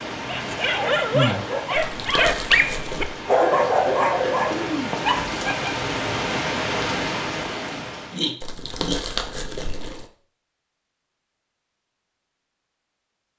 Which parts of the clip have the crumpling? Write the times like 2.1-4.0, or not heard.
1.8-3.2, 8.4-10.1.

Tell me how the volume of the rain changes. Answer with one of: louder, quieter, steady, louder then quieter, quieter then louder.
quieter then louder.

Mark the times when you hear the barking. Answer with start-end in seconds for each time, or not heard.
0.2-5.8.